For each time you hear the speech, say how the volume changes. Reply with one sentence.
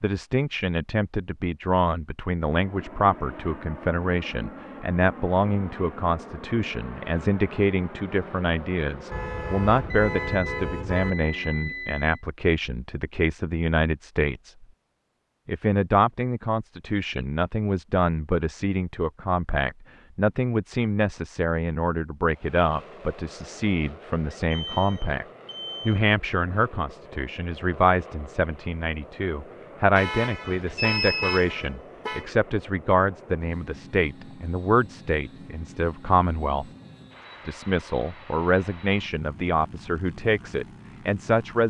You can hear the speech from 0.0 to 14.7 s, at a steady volume; from 15.4 to 25.2 s, at a steady volume; from 25.9 to 36.6 s, at a steady volume; and from 37.5 to 41.6 s, at a steady volume.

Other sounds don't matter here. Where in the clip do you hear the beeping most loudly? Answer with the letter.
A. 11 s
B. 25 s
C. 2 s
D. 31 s
D.